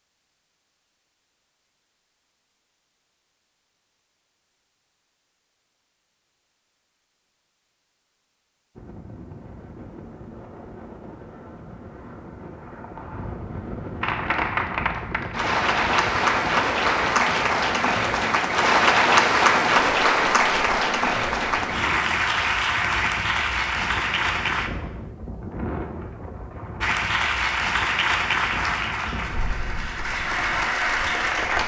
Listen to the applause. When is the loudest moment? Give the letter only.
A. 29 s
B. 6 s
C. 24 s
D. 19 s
D.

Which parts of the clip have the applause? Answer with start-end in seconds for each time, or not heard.
14.0-24.7, 26.8-31.6.